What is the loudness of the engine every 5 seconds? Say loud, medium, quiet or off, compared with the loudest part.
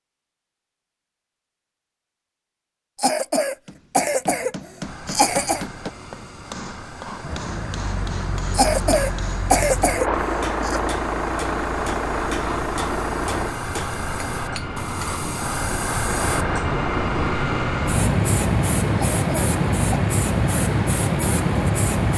off, medium, loud, medium, medium.